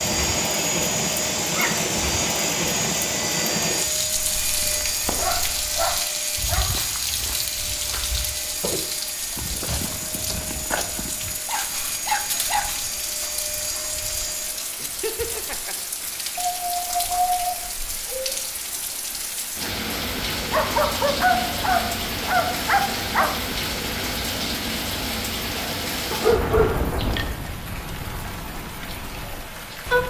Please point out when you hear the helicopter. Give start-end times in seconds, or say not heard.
0.0-14.7.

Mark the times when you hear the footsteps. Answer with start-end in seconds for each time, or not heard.
4.1-12.9.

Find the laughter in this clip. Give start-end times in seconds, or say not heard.
14.8-15.8.